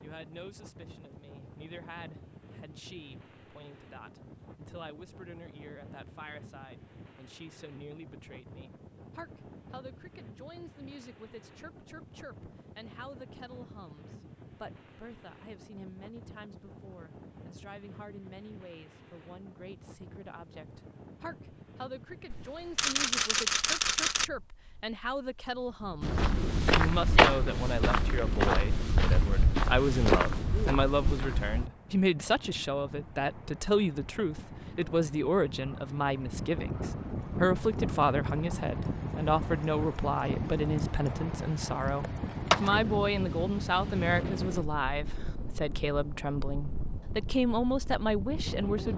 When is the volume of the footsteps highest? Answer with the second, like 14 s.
27 s.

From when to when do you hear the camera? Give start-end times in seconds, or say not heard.
22.3-24.2.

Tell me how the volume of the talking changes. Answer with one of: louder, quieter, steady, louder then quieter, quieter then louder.
louder.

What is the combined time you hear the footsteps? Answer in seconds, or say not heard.
6 s.